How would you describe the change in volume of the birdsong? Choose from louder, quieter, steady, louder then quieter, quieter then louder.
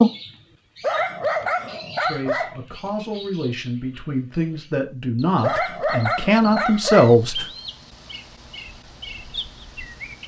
quieter then louder.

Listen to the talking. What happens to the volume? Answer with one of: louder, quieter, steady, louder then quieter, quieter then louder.
louder.